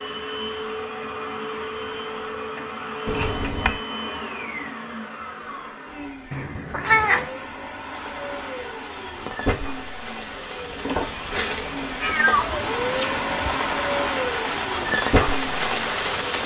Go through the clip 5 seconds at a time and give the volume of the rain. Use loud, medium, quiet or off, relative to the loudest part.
off, quiet, medium, loud.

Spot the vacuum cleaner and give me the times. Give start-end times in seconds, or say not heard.
0.0-16.4.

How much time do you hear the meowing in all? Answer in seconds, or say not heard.
3 s.